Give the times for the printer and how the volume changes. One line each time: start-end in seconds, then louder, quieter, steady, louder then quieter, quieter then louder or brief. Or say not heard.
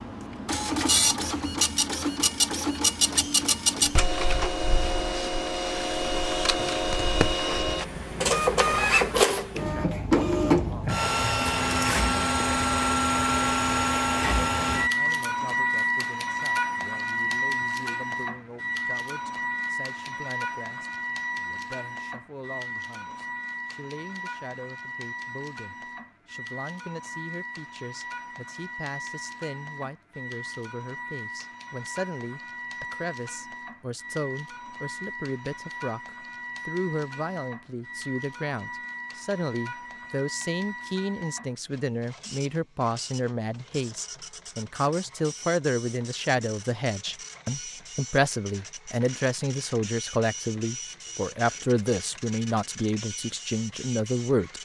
0.0-54.6 quieter.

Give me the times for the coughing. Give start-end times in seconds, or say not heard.
not heard.